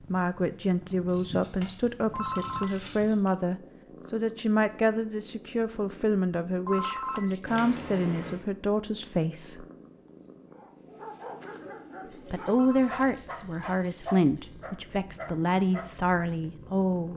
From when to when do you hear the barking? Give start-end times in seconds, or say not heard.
10.5-15.9.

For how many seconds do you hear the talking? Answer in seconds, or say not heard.
14 s.